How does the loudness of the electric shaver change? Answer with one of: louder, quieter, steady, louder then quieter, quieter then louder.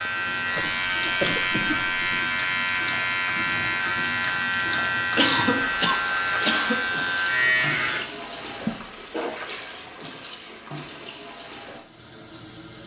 steady.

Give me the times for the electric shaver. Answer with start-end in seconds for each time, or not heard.
0.0-8.1.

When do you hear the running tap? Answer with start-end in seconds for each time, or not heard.
0.0-12.8.